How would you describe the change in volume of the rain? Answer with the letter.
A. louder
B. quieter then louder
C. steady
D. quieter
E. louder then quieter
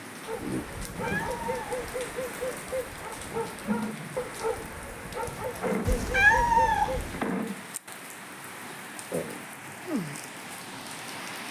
C.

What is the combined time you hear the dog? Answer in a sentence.
You can hear the dog for 7 seconds altogether.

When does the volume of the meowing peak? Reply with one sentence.
The volume of the meowing peaks at 6 seconds.